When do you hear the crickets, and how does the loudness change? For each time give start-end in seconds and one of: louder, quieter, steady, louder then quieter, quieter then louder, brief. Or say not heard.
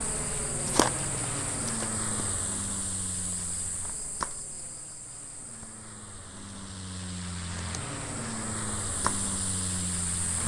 0.0-10.4 quieter then louder.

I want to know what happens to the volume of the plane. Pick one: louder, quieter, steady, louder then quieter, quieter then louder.
quieter then louder.